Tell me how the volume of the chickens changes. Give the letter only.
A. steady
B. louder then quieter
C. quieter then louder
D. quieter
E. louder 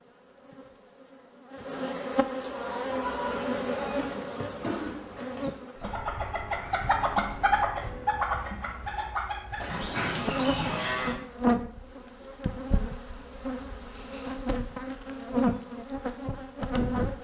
B.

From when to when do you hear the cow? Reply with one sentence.
You can hear the cow from 9.6 to 11.2 s.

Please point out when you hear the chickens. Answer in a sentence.
The chickens can be heard from 2.4 to 11.0 s.